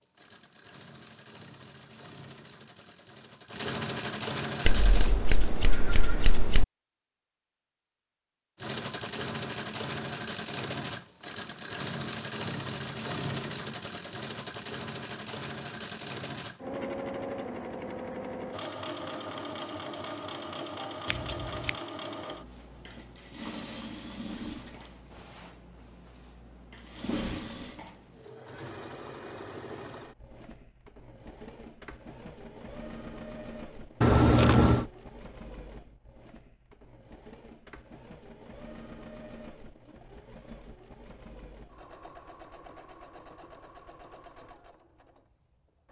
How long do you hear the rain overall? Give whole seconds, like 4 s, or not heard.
not heard.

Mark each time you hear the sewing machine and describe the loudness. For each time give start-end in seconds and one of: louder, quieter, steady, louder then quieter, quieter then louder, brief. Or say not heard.
0.0-5.1 louder
8.6-45.8 quieter.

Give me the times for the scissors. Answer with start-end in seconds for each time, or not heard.
4.7-6.7, 21.1-21.7, 34.0-34.9.